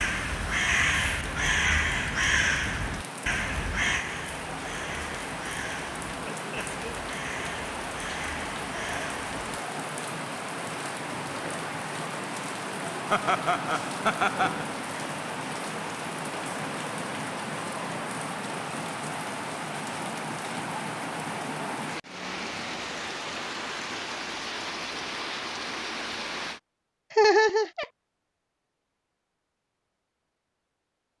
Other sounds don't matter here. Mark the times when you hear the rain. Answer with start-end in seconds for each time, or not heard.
0.0-26.6.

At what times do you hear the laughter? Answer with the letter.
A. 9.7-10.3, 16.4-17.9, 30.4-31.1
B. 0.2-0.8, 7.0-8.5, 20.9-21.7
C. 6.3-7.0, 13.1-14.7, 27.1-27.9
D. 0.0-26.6
C.